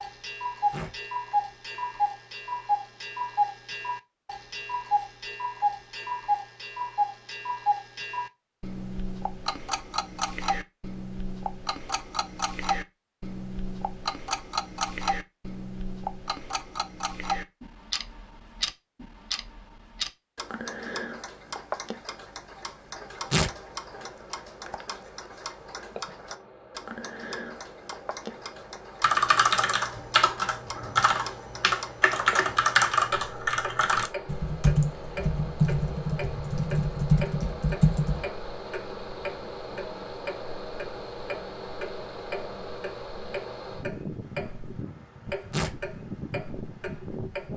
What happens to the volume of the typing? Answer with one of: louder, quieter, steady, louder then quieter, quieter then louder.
steady.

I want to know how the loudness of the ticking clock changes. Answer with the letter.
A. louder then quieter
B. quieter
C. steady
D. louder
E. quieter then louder
B.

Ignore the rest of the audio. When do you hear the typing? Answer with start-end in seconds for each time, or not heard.
29.0-38.2.